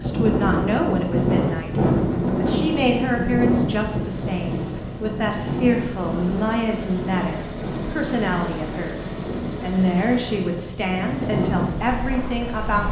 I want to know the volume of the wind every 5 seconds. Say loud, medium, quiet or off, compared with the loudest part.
loud, medium, medium.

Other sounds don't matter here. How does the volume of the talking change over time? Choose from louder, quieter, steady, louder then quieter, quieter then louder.
steady.